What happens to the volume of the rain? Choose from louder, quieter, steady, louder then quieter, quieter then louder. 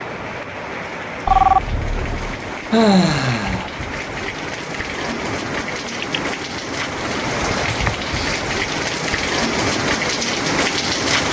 louder.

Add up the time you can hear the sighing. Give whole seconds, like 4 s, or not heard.
2 s.